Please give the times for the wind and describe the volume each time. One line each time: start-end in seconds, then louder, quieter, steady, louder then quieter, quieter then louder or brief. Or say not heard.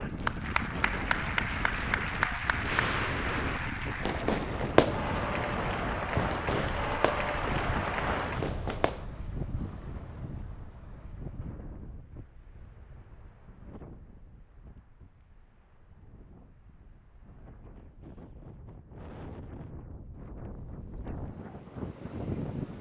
0.0-22.7 quieter then louder.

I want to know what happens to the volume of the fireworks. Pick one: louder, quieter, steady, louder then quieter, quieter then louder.
louder then quieter.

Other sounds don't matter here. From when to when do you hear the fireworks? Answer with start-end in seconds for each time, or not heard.
2.6-9.1.